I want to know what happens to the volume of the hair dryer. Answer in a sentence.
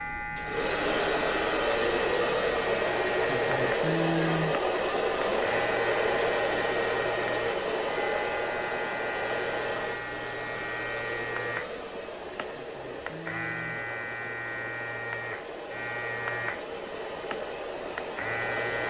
The volume of the hair dryer goes down.